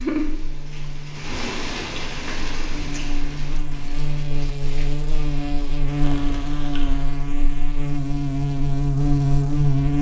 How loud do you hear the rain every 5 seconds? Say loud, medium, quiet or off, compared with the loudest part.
loud, medium.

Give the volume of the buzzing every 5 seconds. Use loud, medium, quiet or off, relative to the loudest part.
medium, loud.